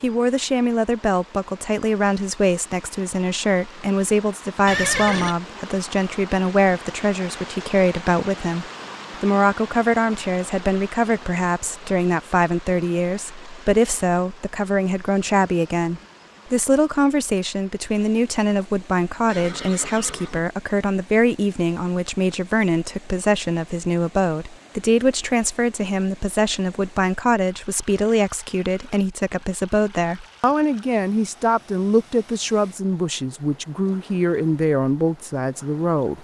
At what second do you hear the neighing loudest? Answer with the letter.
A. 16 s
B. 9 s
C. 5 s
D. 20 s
C.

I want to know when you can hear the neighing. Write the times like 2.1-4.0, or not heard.
4.7-5.3, 19.2-20.4.